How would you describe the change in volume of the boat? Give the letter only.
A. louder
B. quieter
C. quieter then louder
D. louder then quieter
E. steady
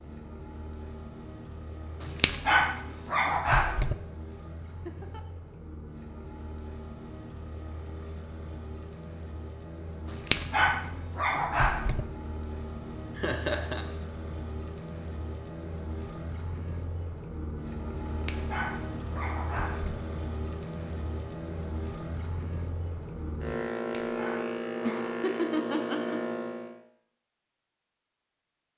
A.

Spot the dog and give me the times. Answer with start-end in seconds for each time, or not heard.
2.0-4.0, 10.1-12.1, 18.1-20.0, 23.8-25.2.